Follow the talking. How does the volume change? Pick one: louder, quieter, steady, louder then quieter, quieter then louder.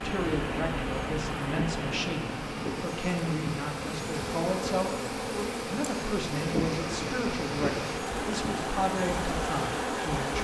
steady.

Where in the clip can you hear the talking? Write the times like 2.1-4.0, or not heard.
0.0-10.4.